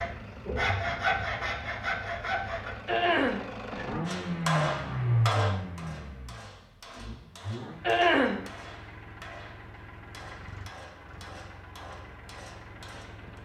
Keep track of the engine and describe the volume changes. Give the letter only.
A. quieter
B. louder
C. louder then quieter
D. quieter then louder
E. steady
C.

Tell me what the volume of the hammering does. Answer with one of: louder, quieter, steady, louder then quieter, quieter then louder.
quieter.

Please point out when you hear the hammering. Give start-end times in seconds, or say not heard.
4.0-13.4.